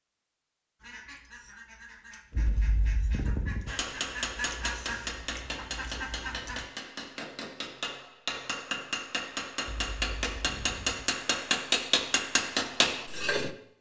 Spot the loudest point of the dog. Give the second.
3 s.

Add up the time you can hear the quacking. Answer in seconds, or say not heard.
6 s.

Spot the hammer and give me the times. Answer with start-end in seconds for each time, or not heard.
3.6-13.5.